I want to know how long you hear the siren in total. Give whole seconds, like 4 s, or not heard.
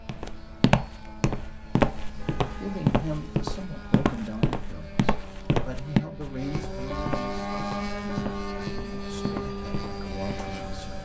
not heard.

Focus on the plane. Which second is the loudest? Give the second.
8 s.